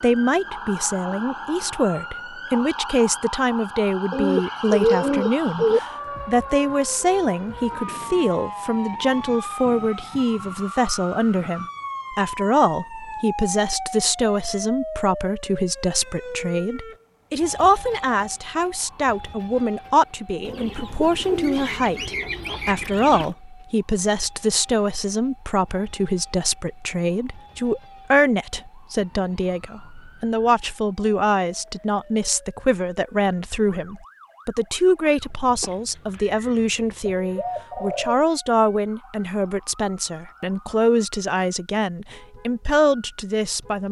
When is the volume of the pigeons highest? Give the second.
5 s.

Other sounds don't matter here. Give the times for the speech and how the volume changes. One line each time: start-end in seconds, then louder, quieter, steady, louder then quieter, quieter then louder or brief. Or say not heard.
0.0-43.8 steady.